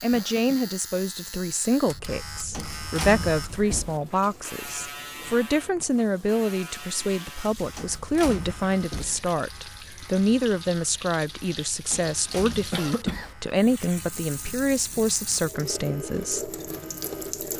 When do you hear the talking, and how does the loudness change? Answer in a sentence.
You can hear the talking from 0.0 to 16.5 s, at a steady volume.